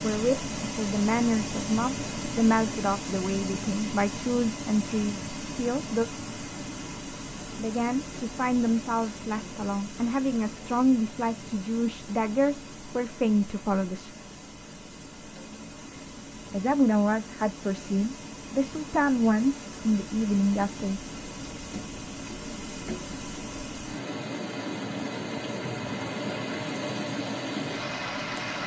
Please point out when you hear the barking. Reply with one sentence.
The barking can't be heard in this clip.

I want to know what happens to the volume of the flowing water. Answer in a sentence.
The volume of the flowing water goes down, then up.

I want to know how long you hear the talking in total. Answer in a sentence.
The talking can be heard for 17 seconds in total.